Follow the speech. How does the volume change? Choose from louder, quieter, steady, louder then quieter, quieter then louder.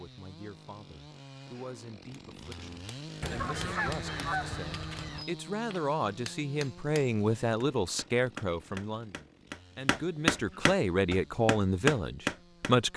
louder.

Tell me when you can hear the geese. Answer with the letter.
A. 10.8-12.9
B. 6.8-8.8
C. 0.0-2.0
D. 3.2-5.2
D.